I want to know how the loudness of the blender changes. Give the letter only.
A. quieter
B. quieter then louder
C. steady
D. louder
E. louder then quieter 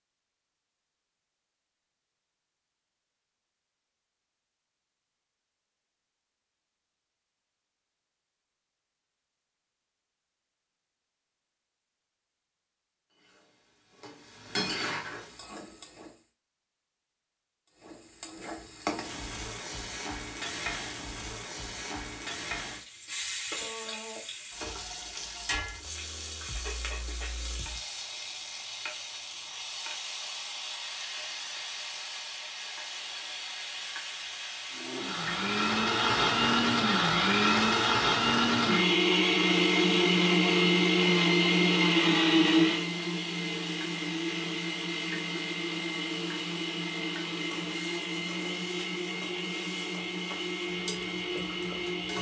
A.